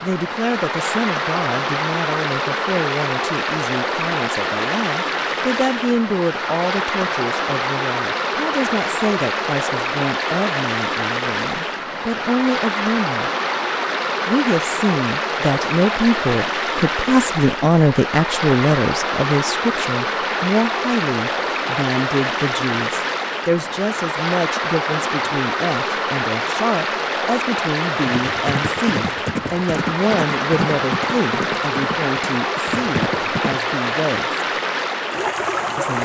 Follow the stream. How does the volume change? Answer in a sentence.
The loudness of the stream stays about the same.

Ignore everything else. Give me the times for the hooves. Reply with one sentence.
You can hear the hooves from 28.1 to 33.6 s.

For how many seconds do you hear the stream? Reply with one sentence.
You can hear the stream for 36 seconds altogether.